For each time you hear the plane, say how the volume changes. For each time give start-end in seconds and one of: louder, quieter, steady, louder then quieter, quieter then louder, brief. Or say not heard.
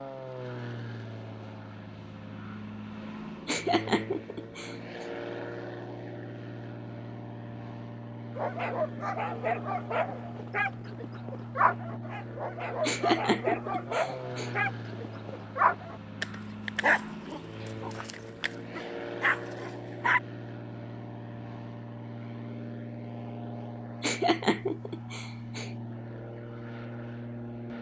0.0-27.7 steady.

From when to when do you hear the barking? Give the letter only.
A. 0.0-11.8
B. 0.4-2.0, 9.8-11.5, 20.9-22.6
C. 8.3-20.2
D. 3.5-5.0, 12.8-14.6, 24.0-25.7
C.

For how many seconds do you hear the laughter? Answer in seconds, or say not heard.
5 s.